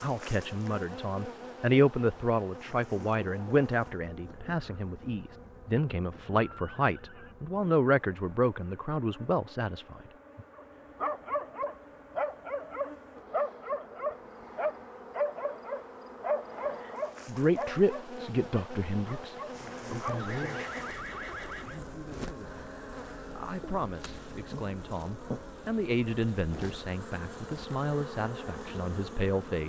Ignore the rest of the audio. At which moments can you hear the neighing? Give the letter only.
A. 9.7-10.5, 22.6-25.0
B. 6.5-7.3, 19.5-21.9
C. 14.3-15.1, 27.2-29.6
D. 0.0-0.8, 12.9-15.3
B.